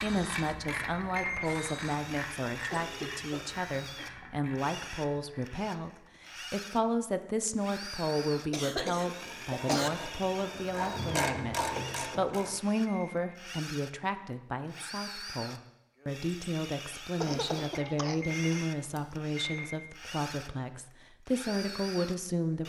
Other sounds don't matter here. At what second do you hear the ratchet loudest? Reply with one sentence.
The loudest moment of the ratchet is at 11 seconds.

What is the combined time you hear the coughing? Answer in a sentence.
You can hear the coughing for 4 seconds altogether.